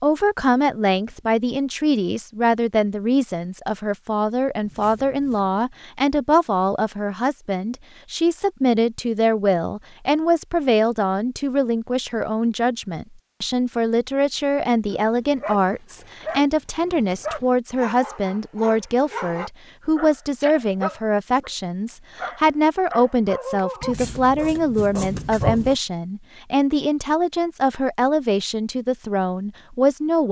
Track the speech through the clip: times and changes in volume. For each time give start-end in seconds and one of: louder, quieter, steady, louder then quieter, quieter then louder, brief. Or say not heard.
0.0-30.2 steady.